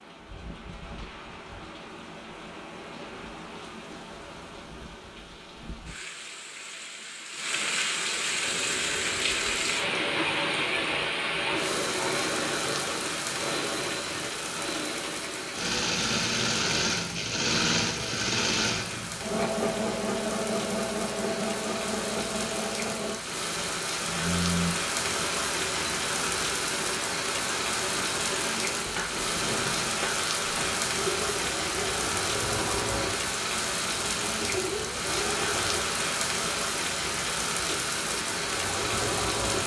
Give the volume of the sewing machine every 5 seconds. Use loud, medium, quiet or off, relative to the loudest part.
off, medium, medium, loud, loud, medium, medium, medium.